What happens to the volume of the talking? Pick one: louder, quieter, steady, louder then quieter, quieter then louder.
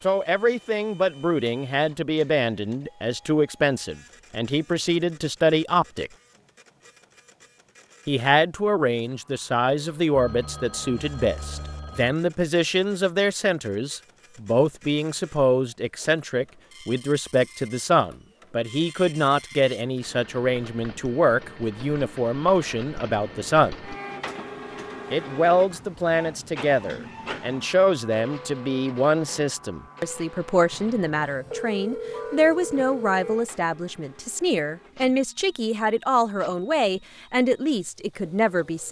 steady.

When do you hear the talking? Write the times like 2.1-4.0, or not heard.
0.0-6.1, 8.1-23.8, 25.1-38.8.